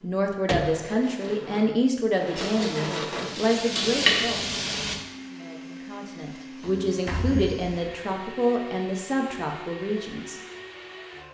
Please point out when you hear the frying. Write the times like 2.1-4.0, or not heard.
2.4-5.0.